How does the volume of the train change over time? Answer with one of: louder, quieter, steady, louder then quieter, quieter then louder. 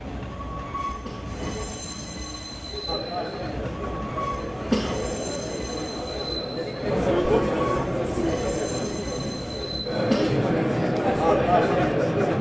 steady.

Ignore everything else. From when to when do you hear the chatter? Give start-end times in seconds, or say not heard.
2.9-12.3.